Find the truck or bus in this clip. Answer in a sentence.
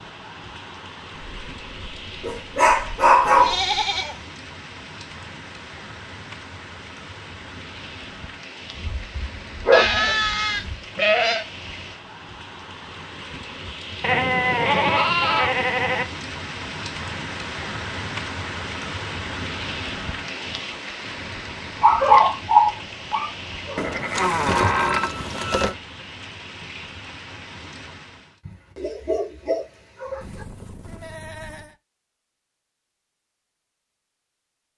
The truck or bus can't be heard in this clip.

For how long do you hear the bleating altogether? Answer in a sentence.
You can hear the bleating for 8 seconds altogether.